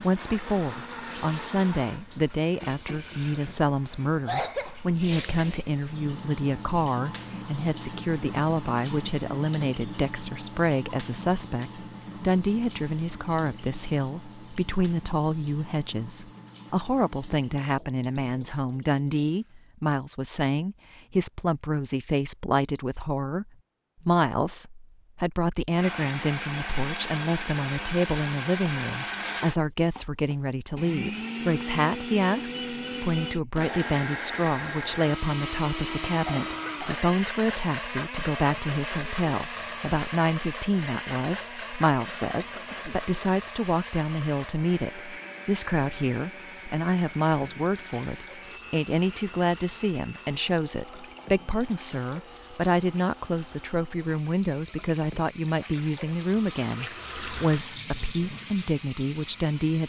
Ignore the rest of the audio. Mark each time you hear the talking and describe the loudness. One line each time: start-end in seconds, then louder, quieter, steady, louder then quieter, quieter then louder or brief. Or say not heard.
0.0-59.8 steady.